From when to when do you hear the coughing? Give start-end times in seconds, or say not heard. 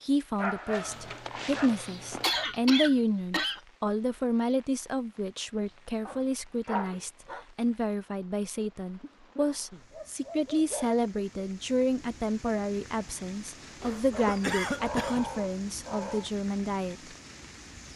0.9-3.6, 9.0-9.8, 13.8-15.3.